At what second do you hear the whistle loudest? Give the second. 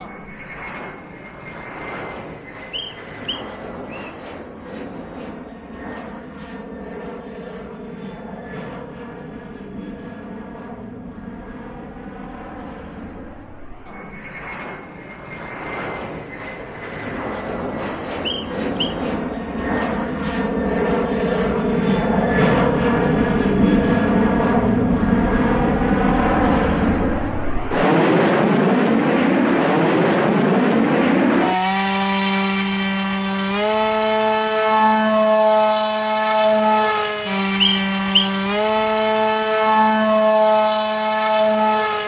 38 s.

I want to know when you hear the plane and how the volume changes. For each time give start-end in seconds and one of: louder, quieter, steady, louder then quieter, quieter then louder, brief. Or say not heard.
0.0-42.0 louder.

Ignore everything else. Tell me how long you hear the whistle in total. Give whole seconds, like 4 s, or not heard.
3 s.